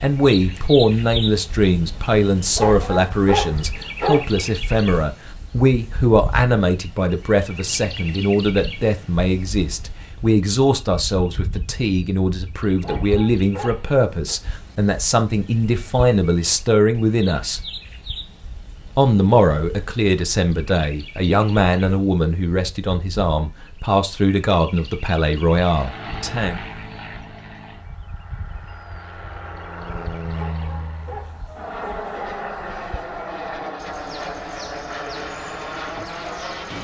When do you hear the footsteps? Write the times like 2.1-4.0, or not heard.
not heard.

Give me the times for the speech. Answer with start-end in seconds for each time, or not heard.
0.0-17.6, 18.9-26.6.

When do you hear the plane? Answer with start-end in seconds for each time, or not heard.
25.6-36.7.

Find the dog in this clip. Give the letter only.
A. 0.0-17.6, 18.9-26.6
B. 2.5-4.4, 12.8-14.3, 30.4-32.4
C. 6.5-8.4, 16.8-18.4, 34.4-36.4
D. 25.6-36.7
B.